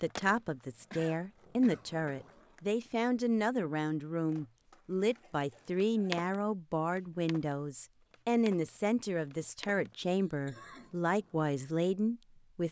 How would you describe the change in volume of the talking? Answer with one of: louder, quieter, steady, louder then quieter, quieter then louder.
steady.